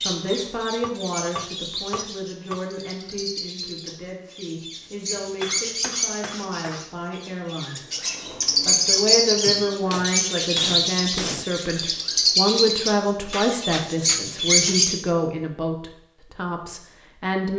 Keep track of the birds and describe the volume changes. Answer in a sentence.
The volume of the birds goes up.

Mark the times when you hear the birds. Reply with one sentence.
You can hear the birds from 0.0 to 14.9 s.